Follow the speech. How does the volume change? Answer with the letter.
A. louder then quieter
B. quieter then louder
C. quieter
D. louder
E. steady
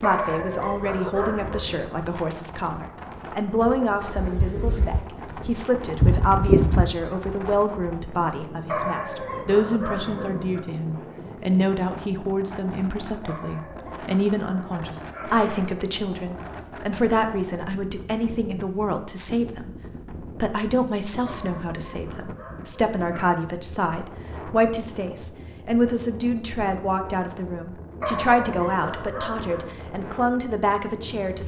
E.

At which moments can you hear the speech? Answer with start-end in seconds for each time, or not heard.
0.0-19.7, 20.4-31.4.